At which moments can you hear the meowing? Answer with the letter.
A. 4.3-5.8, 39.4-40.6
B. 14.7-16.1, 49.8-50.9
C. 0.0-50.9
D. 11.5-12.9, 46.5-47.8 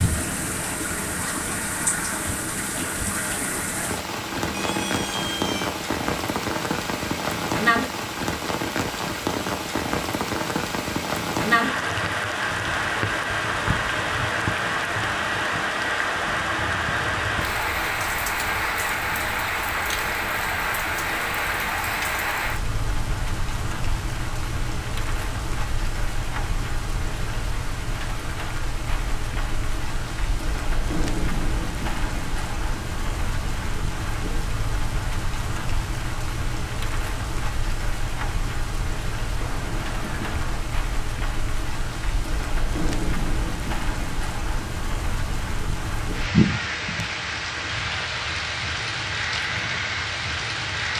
A.